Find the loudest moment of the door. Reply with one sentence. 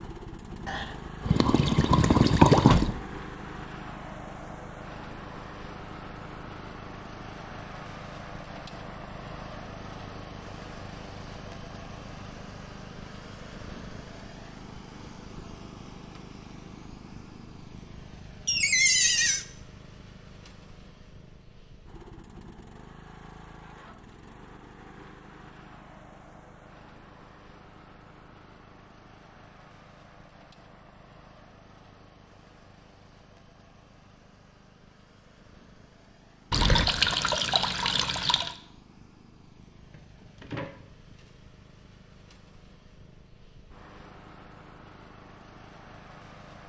The volume of the door peaks at 19 seconds.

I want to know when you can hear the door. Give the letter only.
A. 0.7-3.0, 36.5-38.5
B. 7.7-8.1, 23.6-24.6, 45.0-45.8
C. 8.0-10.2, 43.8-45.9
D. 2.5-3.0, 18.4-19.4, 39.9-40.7
D.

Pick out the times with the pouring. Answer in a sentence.
The pouring can be heard from 0.7 to 3.0 s and from 36.5 to 38.5 s.